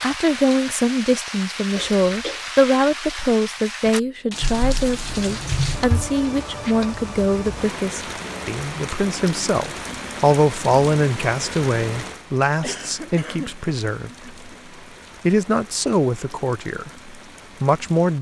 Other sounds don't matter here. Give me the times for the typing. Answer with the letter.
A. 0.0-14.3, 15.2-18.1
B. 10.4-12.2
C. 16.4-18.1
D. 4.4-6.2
D.